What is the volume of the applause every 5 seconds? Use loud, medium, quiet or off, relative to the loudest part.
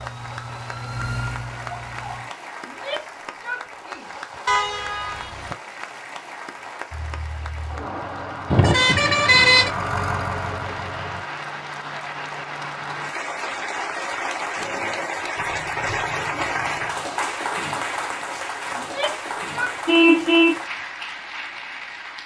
medium, medium, loud, loud, medium.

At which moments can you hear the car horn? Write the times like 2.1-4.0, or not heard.
4.5-5.5, 8.5-9.7, 19.9-20.6.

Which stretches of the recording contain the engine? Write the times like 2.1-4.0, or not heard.
6.9-11.2.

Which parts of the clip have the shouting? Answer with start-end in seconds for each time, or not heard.
2.6-4.2, 18.8-20.3.